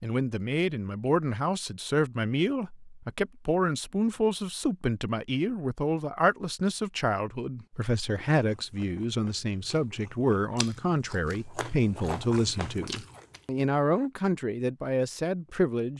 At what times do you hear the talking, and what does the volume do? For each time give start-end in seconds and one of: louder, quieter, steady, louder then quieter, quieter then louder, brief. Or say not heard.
0.0-15.9 steady.